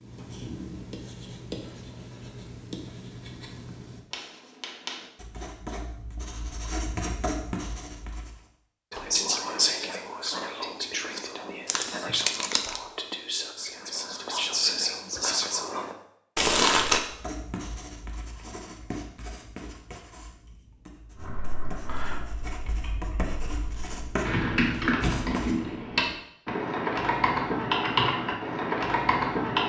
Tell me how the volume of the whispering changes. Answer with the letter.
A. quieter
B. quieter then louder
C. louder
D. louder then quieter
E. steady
B.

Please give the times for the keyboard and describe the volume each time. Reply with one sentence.
The keyboard can be heard from 21.1 to 29.6 s, getting louder.